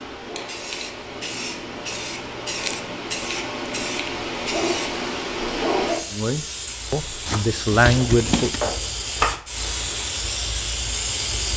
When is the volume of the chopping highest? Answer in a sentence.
The volume of the chopping peaks at 9 seconds.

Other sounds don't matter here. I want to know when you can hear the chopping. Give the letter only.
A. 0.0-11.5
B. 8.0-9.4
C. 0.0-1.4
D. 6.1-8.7
B.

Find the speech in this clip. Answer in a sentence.
You can hear the speech from 6.1 to 8.7 s.